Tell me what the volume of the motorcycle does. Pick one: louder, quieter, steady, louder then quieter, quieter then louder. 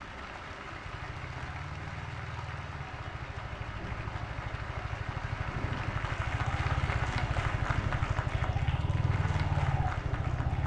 louder.